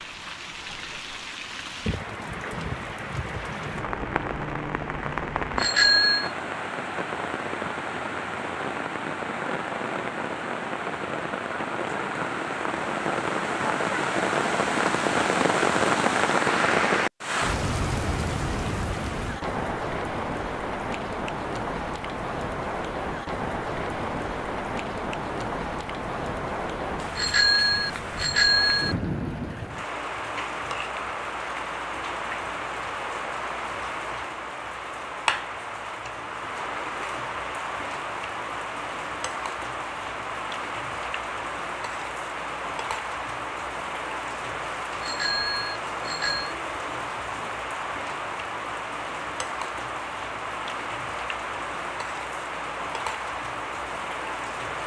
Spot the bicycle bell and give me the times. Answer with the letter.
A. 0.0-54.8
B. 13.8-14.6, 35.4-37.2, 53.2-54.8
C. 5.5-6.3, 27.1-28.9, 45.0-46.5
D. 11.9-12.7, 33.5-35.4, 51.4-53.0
C.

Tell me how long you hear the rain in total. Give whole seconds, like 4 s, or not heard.
55 s.